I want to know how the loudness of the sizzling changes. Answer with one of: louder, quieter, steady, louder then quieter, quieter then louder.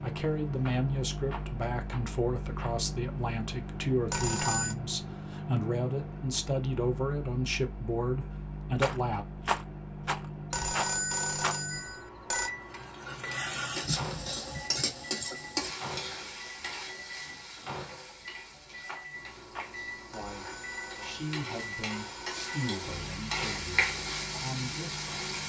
quieter then louder.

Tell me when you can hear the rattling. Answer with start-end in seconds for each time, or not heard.
0.6-2.8, 8.8-11.6, 18.9-19.7.